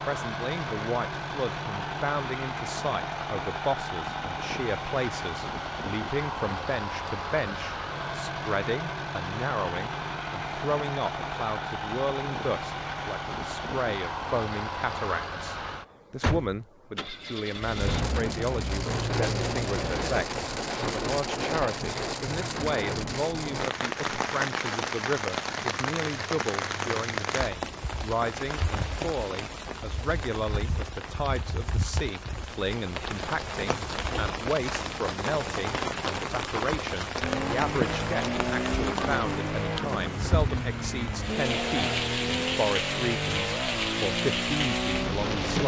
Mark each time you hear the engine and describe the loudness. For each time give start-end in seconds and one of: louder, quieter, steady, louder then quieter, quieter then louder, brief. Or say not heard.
0.0-20.2 steady
37.2-45.6 steady.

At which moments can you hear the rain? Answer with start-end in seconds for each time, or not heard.
17.8-45.6.